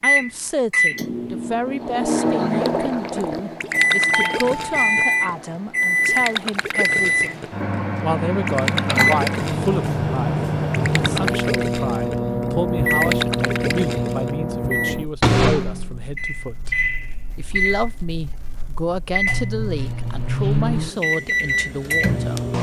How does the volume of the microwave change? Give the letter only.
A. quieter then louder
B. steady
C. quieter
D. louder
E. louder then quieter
B.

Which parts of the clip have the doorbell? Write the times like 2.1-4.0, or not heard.
4.1-5.3.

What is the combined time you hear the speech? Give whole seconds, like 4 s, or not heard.
22 s.